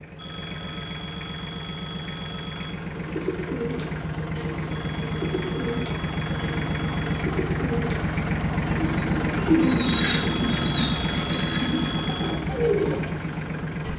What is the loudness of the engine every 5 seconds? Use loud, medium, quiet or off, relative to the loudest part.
medium, loud, loud.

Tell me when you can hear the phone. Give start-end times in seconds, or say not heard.
0.1-2.8, 4.7-7.2, 10.1-12.4.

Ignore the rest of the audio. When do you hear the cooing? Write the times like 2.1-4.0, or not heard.
2.8-13.4.